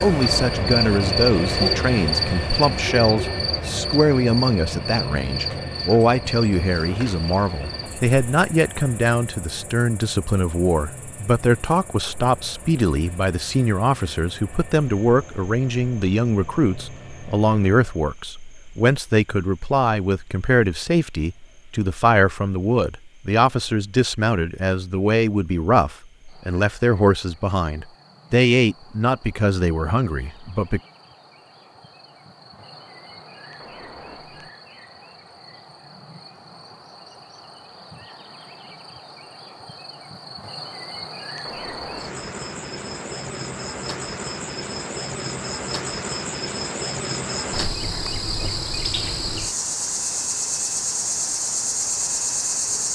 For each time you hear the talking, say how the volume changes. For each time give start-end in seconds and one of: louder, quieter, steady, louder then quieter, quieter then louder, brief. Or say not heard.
0.0-30.8 steady.